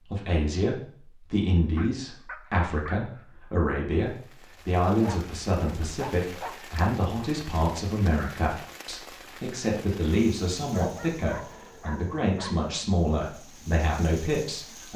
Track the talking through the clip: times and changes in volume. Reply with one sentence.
You can hear the talking from 0.0 to 14.9 s, at a steady volume.